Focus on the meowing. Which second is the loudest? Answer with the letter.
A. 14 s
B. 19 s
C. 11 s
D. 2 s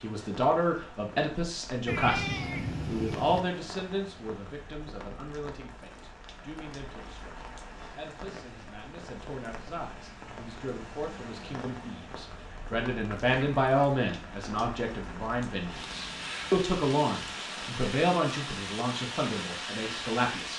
D.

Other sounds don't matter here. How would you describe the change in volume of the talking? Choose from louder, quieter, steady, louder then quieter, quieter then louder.
quieter then louder.